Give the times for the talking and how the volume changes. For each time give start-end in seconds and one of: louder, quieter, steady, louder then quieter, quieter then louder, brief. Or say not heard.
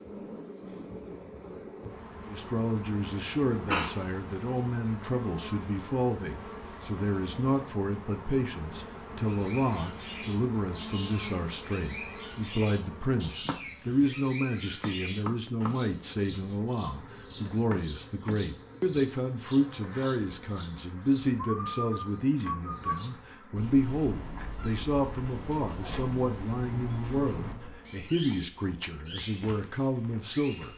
2.2-30.7 steady.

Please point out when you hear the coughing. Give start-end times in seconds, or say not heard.
3.0-3.9.